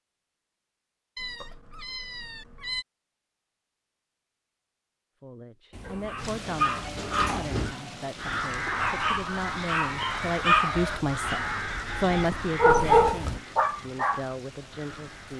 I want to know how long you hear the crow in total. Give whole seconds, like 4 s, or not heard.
7 s.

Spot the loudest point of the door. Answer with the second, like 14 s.
7 s.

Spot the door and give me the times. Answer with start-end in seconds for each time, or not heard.
5.7-7.8.